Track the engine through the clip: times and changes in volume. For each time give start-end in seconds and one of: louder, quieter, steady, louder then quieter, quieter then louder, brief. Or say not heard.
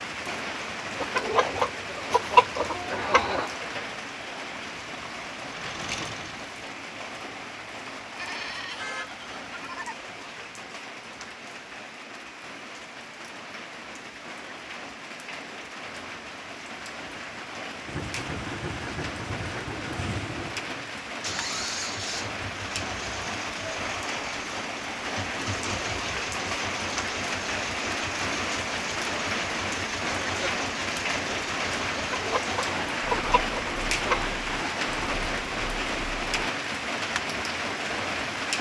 4.8-6.8 brief
17.9-36.5 steady.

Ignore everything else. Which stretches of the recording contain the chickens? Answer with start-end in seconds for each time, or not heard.
0.9-3.5, 31.9-34.4.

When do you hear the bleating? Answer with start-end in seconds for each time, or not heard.
8.2-10.1.